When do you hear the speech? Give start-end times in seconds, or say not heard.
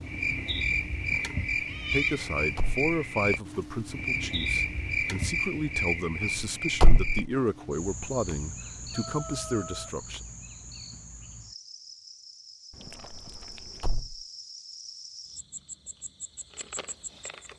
1.9-10.2.